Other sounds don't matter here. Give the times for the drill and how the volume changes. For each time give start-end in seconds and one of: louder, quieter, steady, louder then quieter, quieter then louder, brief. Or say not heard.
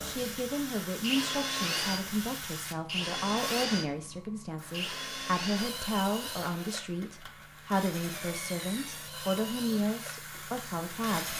0.0-11.3 quieter.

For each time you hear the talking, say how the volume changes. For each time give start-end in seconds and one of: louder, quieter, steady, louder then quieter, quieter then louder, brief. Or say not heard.
0.0-11.3 steady.